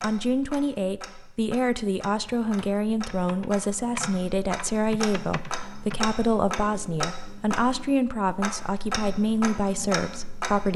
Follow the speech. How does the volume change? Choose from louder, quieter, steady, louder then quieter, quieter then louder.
steady.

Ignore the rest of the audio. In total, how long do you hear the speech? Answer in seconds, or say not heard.
11 s.